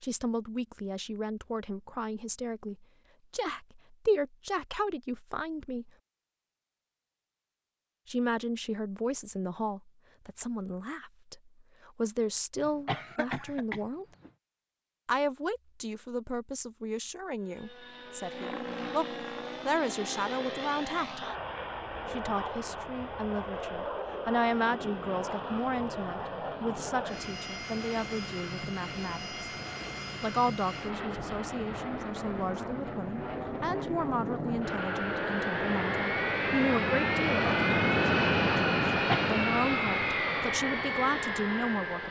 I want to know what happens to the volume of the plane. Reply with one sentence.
The volume of the plane goes up.